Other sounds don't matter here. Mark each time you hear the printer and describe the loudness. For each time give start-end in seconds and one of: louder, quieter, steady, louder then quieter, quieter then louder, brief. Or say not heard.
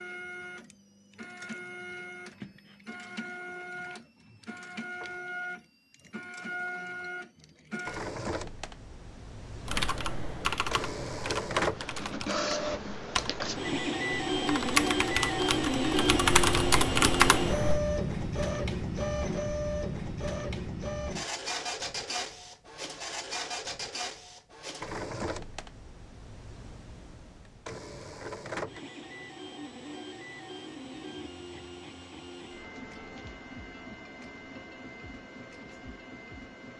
0.0-36.7 louder then quieter.